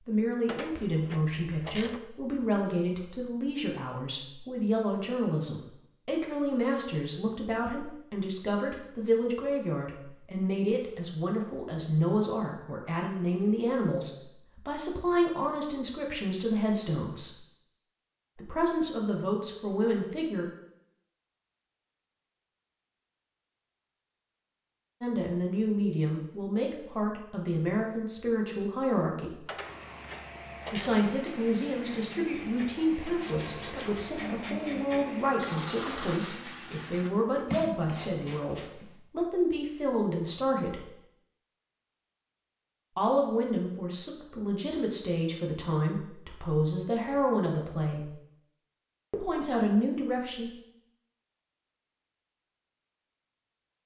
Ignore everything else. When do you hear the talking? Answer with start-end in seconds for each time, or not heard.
0.1-17.4, 18.4-20.4, 25.0-29.4, 30.7-40.9, 43.0-48.1, 49.1-50.5.